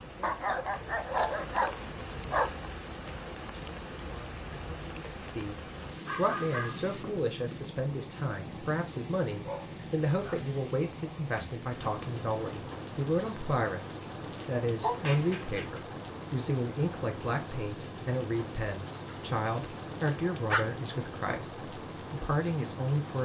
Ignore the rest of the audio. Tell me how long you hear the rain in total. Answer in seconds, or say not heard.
23 s.